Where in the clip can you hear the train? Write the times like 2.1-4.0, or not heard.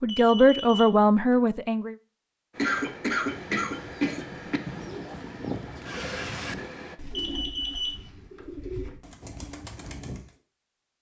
2.5-7.0.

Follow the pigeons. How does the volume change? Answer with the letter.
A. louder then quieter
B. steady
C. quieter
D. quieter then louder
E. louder
C.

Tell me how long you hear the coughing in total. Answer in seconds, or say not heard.
2 s.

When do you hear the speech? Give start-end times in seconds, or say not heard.
0.0-1.9.